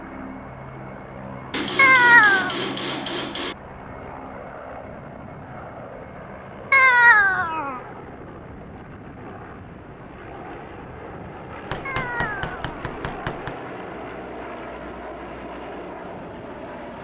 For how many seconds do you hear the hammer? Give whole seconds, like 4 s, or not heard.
4 s.